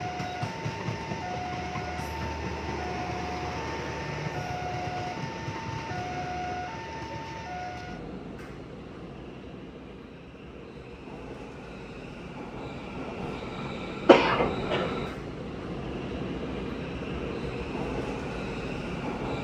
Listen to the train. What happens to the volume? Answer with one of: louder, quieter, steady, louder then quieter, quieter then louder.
quieter then louder.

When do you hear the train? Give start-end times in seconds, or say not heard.
0.0-19.3.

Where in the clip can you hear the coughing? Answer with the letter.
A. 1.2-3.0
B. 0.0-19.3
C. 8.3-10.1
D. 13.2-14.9
D.